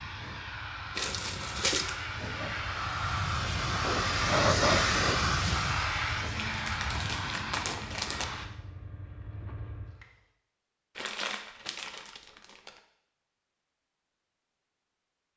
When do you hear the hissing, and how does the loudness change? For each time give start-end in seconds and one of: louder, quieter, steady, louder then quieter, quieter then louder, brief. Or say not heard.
0.0-10.1 louder then quieter.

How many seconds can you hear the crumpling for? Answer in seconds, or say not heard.
5 s.